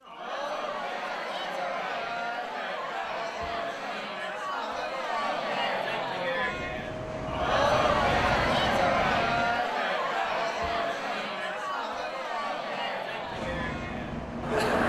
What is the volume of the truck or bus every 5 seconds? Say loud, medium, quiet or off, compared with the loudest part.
off, loud, loud.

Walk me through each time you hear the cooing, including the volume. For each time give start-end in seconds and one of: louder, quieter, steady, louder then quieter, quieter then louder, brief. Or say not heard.
not heard.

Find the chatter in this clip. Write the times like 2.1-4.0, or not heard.
0.1-14.8.